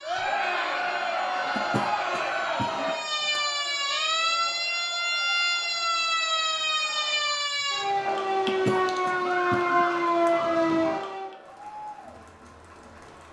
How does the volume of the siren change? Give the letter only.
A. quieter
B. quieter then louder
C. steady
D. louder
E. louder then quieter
D.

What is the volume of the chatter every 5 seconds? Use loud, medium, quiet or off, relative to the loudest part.
loud, quiet, quiet.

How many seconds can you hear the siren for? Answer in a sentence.
You can hear the siren for 11 seconds altogether.